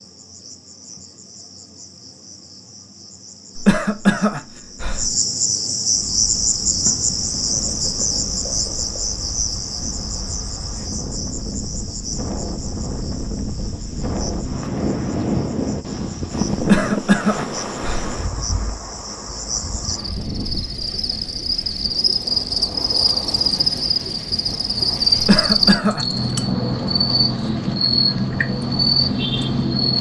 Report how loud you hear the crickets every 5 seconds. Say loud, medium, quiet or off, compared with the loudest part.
quiet, loud, quiet, quiet, loud, loud.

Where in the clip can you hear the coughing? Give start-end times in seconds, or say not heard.
3.5-5.2, 16.6-18.1, 25.1-26.1.